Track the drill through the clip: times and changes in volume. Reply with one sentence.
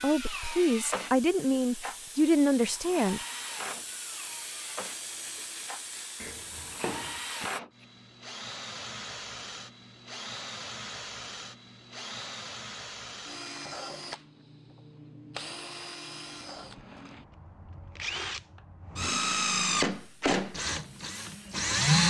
You can hear the drill from 0.0 to 22.0 s, getting louder.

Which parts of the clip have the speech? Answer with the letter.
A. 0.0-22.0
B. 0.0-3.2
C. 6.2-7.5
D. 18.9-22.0
B.